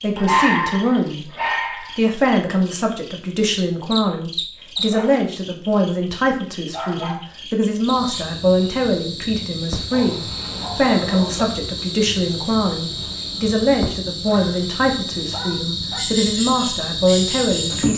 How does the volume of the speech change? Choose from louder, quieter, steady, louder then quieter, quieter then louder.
steady.